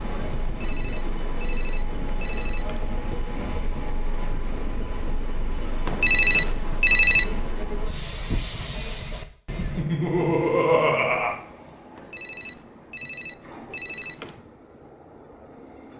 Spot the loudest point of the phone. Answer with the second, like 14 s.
7 s.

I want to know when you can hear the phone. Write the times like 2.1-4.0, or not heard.
0.5-3.0, 5.8-7.3, 11.9-14.4.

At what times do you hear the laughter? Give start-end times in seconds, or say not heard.
9.8-11.3.